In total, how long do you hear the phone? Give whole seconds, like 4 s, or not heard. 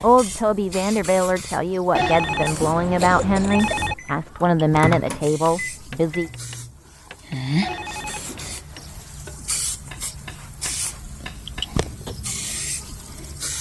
3 s.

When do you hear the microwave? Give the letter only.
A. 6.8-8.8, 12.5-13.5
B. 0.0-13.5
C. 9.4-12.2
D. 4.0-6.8
D.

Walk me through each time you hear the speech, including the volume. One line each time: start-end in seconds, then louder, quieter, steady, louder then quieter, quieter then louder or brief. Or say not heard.
0.0-6.3 steady.